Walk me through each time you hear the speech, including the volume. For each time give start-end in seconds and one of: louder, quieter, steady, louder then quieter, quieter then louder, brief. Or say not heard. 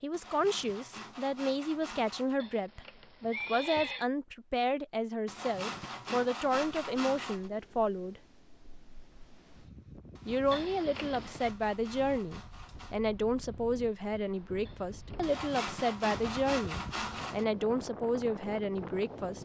0.0-8.2 steady
10.2-19.4 steady.